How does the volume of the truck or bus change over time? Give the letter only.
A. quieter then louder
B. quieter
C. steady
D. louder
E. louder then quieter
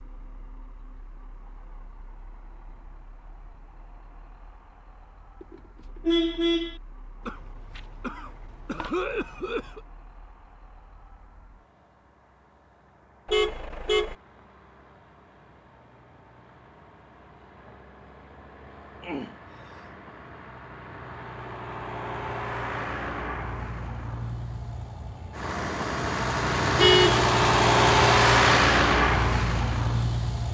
D.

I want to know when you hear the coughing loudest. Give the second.
9 s.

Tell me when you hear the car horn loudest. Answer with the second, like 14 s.
27 s.